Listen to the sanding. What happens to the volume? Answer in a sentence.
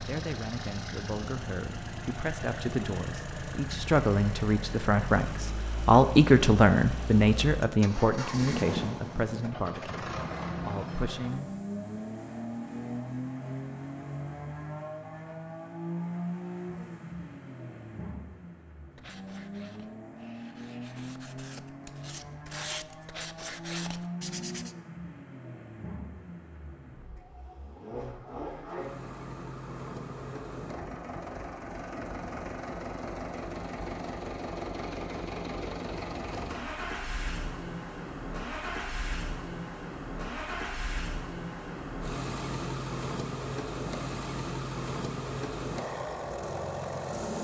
The loudness of the sanding goes up.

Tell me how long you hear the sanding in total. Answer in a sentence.
You can hear the sanding for 6 seconds altogether.